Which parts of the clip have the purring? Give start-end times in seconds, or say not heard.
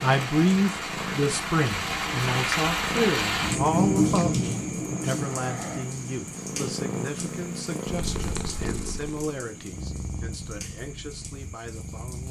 0.0-12.2.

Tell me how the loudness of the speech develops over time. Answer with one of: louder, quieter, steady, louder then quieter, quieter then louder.
quieter.